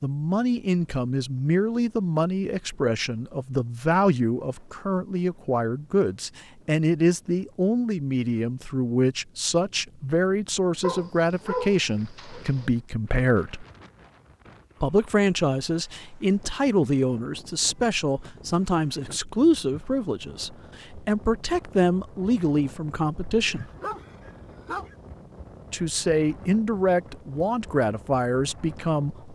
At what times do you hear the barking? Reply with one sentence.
The barking can be heard from 10.8 to 12.7 s and from 23.4 to 24.9 s.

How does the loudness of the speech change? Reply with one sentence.
The volume of the speech stays about the same.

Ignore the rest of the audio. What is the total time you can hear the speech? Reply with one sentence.
The speech can be heard for 26 seconds in total.